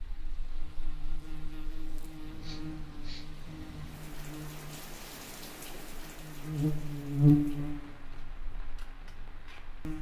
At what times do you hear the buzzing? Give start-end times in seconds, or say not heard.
0.0-9.9.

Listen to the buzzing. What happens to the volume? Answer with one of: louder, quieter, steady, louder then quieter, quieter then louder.
louder then quieter.